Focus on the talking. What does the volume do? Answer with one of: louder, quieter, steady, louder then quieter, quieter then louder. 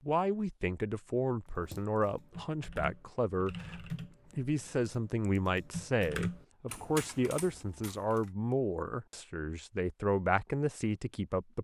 steady.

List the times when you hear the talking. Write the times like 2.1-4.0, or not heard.
0.0-11.5.